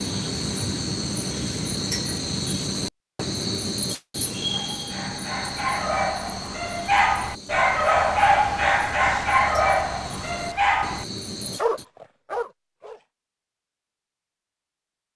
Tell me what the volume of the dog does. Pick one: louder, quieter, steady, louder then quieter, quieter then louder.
louder then quieter.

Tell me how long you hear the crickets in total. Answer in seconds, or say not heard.
12 s.